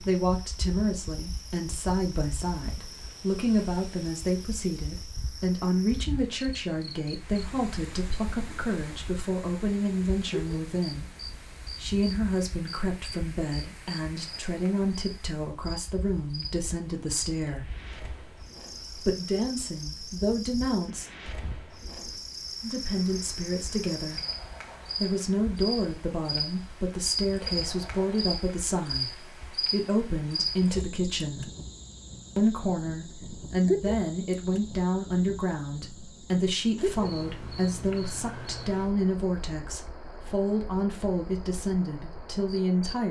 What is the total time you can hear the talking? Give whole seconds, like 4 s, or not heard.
38 s.